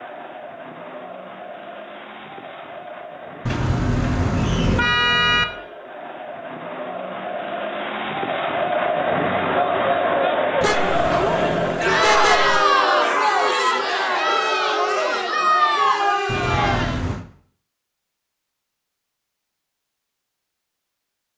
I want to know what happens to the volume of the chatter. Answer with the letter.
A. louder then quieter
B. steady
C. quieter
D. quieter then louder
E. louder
E.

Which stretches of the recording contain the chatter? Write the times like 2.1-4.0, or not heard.
0.0-17.1.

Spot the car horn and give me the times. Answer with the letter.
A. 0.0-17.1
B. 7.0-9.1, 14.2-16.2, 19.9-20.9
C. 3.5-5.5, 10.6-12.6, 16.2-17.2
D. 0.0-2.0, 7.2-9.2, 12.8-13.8
C.